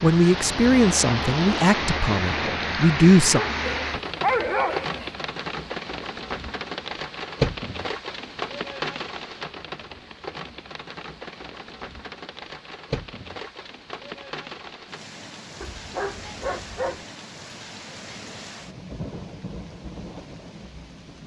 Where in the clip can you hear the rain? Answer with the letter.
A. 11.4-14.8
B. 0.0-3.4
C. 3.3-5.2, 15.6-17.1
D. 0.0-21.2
D.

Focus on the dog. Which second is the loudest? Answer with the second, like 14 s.
4 s.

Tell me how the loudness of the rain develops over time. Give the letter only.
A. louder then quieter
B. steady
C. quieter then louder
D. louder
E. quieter
E.